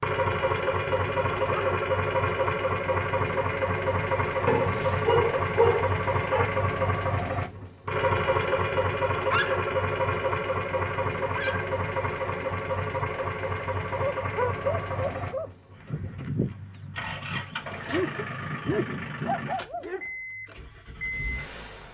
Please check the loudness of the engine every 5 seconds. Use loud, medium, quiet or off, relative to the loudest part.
loud, loud, loud, medium, medium.